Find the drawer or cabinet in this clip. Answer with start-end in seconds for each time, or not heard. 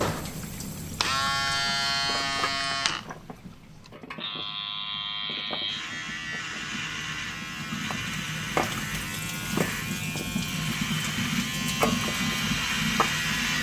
not heard.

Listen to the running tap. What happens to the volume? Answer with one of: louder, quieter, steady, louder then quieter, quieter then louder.
quieter then louder.